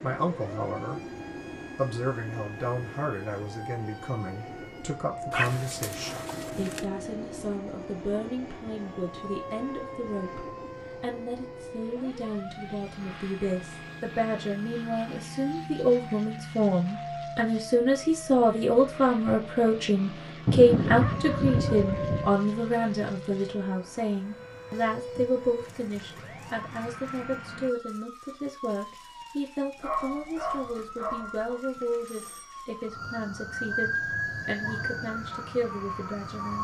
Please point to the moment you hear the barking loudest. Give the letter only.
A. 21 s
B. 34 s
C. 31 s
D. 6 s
A.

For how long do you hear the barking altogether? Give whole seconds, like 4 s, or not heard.
5 s.